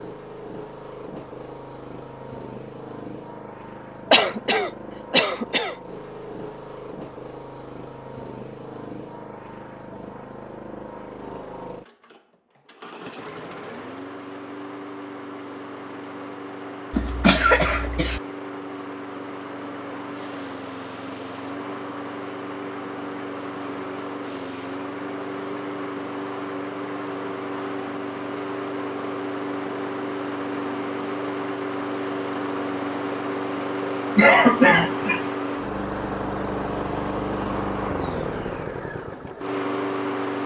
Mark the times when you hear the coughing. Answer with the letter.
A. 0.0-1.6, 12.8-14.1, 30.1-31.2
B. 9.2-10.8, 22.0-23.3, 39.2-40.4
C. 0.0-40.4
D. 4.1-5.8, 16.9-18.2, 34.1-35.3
D.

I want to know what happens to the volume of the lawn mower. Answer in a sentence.
The loudness of the lawn mower goes up.